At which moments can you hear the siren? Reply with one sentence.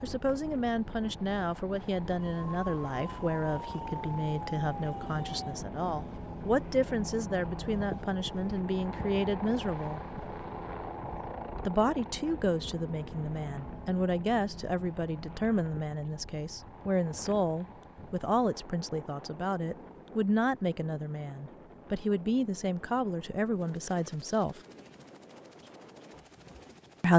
The siren can be heard from 2.1 to 5.6 s.